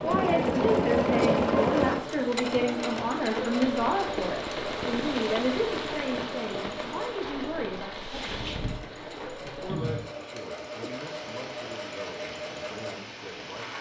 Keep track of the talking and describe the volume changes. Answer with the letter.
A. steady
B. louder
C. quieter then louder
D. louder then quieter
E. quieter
E.